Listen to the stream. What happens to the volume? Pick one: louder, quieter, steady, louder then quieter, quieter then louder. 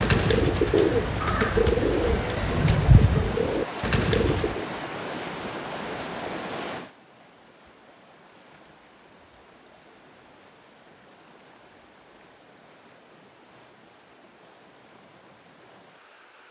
quieter.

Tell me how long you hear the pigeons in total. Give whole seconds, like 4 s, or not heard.
5 s.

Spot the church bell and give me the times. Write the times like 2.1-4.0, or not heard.
not heard.